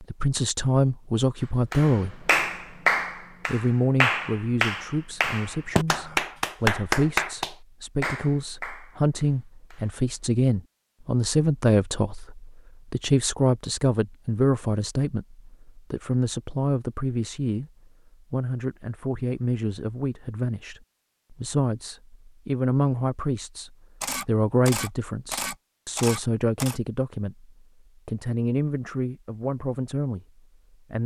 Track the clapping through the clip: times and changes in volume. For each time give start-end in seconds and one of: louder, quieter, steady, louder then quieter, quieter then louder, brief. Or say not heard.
1.7-10.1 quieter.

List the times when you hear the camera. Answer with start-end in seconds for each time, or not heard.
24.0-26.8.